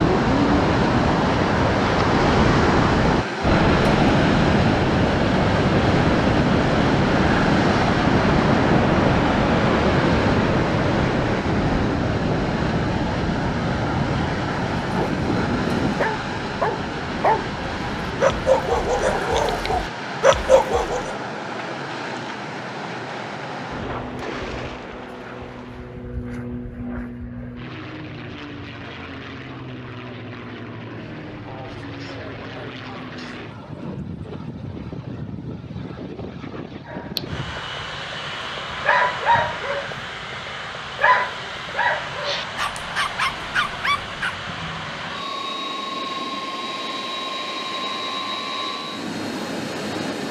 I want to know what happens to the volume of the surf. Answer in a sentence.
The volume of the surf goes down.